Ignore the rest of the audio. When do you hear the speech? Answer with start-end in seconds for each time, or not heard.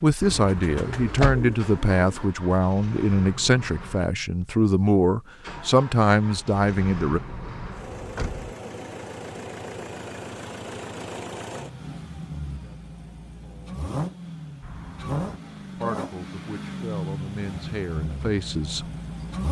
0.0-7.2, 15.8-18.9.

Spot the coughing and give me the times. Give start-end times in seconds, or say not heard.
not heard.